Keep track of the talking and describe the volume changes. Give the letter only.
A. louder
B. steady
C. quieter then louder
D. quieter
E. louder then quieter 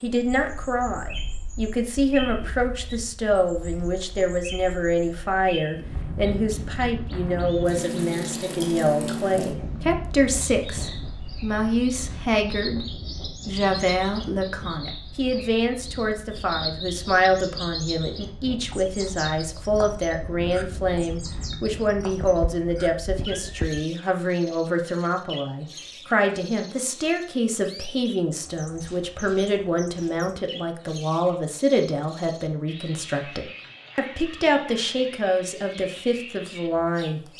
B.